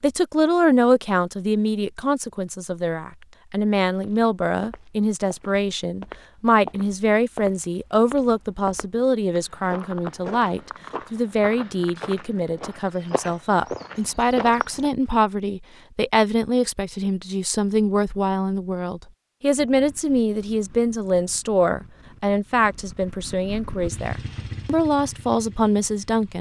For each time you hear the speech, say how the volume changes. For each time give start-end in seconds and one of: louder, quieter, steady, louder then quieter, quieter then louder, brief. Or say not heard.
0.0-26.3 steady.